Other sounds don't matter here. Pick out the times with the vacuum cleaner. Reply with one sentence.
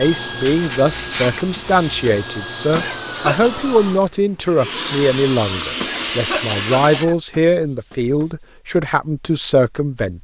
The vacuum cleaner can be heard from 0.0 to 7.0 s.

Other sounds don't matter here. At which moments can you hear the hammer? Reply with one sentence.
You can't hear the hammer here.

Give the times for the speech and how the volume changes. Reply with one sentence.
You can hear the speech from 0.0 to 10.1 s, at a steady volume.